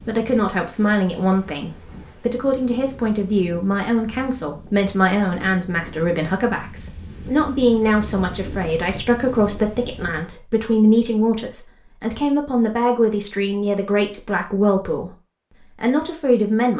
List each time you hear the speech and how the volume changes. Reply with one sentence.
You can hear the speech from 0.1 to 16.7 s, at a steady volume.